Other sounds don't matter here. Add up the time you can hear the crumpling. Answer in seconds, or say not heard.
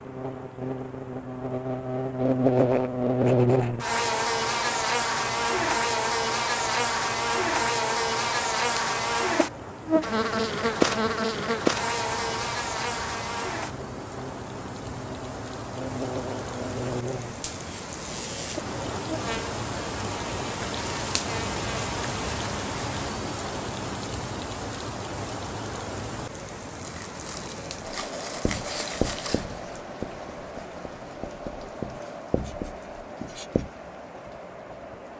3 s.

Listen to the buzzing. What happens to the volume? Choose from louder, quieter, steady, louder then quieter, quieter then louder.
quieter.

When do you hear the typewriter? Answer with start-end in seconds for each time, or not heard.
not heard.